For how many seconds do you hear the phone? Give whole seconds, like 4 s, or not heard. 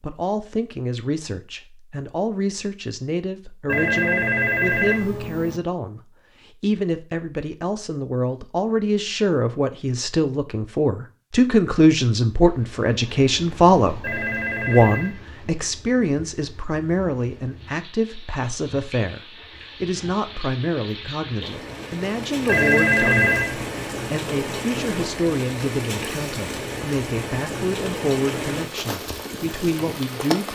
4 s.